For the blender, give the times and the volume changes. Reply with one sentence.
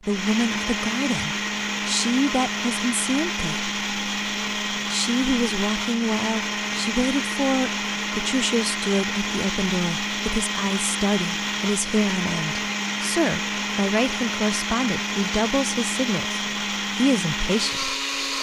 The blender can be heard from 0.0 to 18.3 s, at a steady volume.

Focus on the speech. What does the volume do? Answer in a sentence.
The volume of the speech stays about the same.